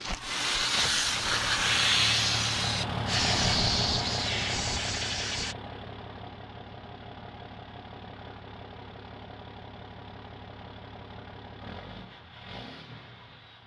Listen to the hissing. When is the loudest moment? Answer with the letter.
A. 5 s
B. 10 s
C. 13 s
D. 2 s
D.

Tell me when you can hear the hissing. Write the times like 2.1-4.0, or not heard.
0.0-5.5.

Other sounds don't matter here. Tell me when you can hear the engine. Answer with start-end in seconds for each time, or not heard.
0.0-13.6.